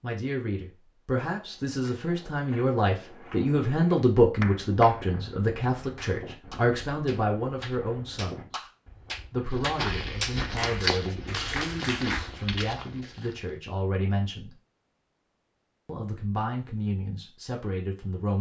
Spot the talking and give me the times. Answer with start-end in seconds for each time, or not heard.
0.0-8.6, 9.3-14.6, 15.8-18.3.